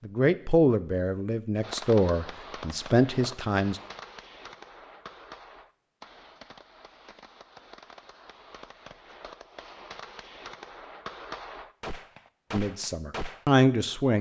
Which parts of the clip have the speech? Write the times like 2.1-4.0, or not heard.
0.0-3.8, 12.5-14.1.